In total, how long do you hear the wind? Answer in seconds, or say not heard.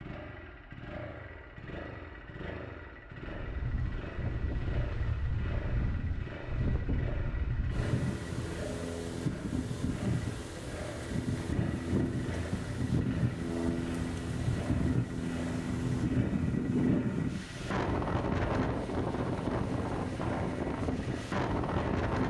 19 s.